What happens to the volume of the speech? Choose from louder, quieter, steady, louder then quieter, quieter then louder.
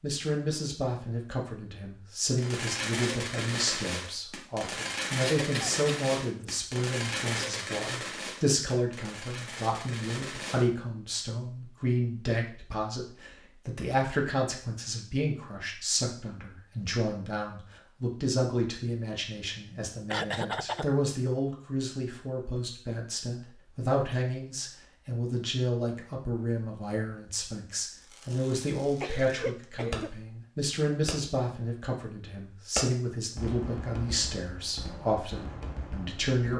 steady.